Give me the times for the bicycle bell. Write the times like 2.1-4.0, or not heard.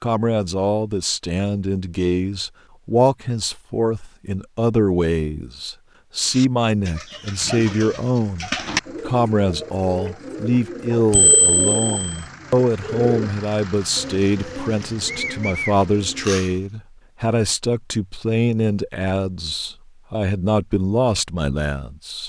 11.1-12.2.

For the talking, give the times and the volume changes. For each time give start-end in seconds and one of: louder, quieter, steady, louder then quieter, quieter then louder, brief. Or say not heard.
0.0-22.2 steady.